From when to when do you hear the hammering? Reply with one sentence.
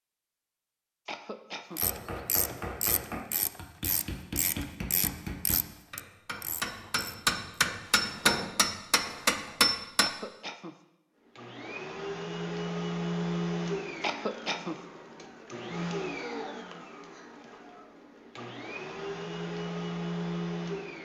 You can hear the hammering from 1.8 to 10.1 s.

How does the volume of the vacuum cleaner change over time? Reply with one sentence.
The loudness of the vacuum cleaner goes down, then up.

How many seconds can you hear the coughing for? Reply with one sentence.
You can hear the coughing for 2 seconds altogether.